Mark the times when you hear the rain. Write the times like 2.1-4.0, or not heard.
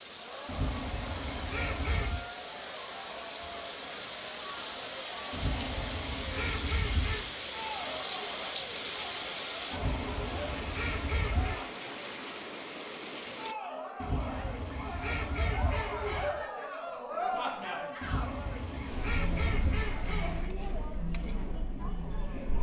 0.0-13.6.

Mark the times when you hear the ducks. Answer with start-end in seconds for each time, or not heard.
0.5-2.2, 5.3-7.3, 9.7-11.7, 14.0-16.4, 18.0-20.5.